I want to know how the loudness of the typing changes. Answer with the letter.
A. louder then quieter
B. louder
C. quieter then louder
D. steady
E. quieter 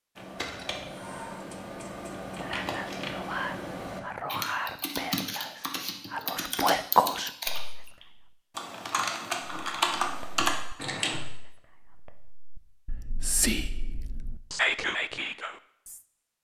B.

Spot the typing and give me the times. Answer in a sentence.
The typing can be heard from 0.1 to 11.2 s.